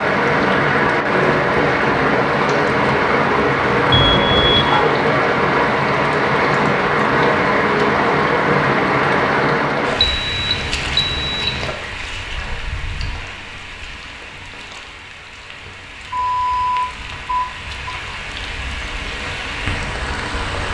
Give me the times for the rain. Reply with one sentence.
The rain can be heard from 0.0 to 20.6 s.